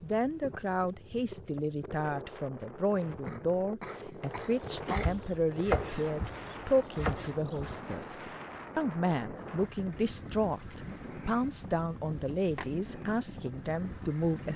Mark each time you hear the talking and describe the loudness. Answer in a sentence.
You can hear the talking from 0.0 to 14.5 s, at a steady volume.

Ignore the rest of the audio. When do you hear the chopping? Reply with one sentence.
You can hear the chopping from 4.9 to 7.8 s.